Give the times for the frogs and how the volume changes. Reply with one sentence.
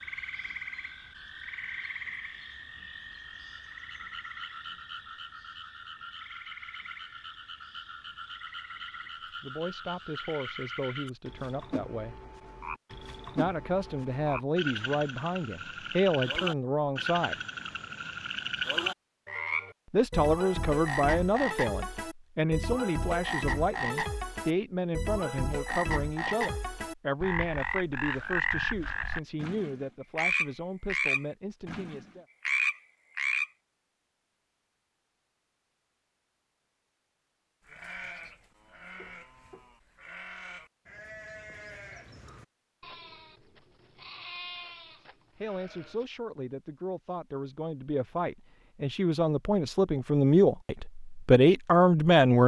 You can hear the frogs from 0.0 to 33.5 s, getting louder.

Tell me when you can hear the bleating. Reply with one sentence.
The bleating can be heard from 37.6 to 46.0 s.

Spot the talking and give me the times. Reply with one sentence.
The talking can be heard from 9.4 to 12.2 s, from 13.3 to 17.4 s, from 19.9 to 32.2 s and from 45.4 to 52.4 s.